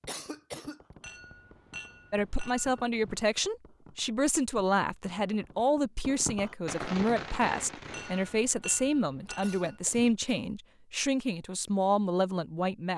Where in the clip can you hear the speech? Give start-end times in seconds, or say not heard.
2.1-12.9.